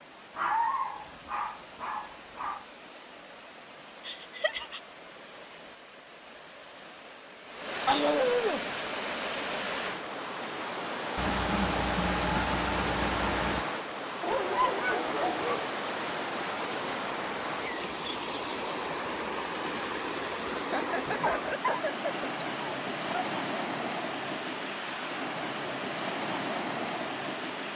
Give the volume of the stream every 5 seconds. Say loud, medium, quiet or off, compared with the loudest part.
quiet, loud, loud, loud, loud, loud.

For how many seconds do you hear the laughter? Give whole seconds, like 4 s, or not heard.
5 s.